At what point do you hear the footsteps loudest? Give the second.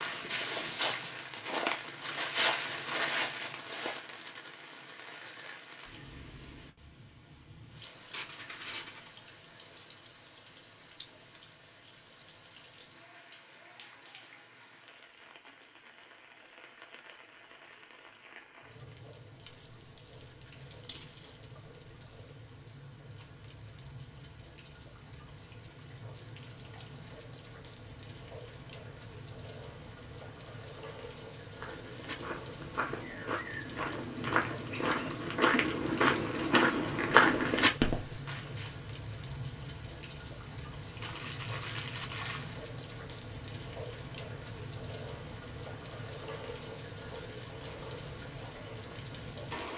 37 s.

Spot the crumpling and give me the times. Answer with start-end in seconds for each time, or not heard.
8.1-9.2, 19.8-21.4, 41.0-42.5.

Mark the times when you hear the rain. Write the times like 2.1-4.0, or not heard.
0.0-49.7.